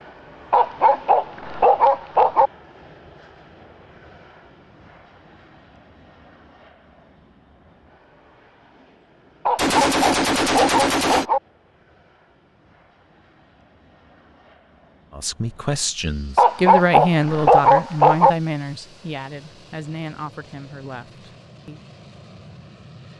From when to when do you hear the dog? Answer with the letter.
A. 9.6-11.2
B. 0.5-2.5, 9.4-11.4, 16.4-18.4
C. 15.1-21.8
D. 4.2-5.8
B.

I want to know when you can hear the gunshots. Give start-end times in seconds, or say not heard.
9.6-11.2.